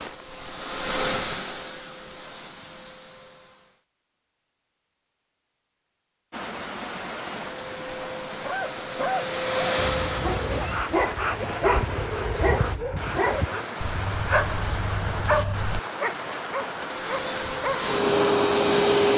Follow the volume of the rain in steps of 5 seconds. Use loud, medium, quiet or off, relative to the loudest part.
off, loud, loud, loud.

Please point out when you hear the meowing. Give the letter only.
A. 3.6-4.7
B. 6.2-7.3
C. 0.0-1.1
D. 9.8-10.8
D.